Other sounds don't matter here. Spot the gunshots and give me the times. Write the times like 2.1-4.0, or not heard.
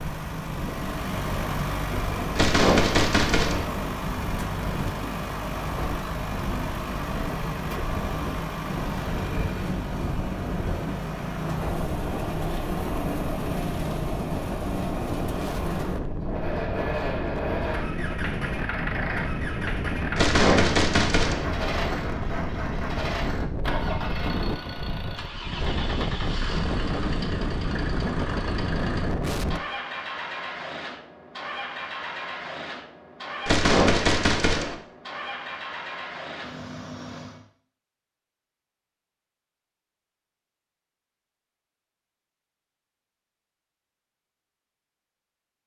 2.4-3.6, 20.1-21.4, 33.5-34.8.